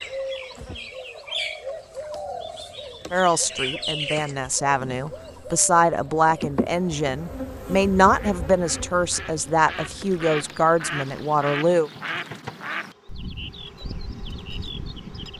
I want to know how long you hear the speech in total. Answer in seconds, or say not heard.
9 s.